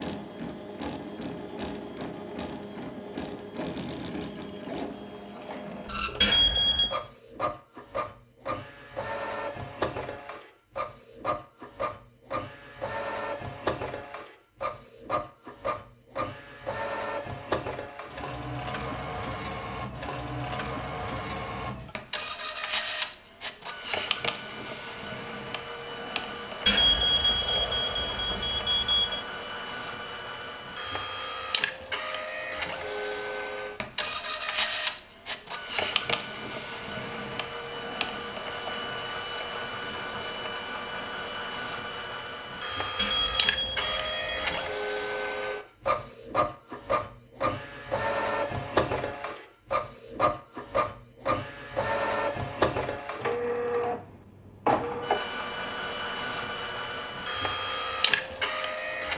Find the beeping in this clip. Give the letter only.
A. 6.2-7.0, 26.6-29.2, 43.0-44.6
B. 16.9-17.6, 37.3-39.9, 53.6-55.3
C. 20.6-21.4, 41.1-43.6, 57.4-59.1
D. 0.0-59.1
A.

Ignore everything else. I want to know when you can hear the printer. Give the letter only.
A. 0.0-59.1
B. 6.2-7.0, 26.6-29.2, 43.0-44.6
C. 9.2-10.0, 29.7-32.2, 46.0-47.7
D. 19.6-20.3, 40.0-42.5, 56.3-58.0
A.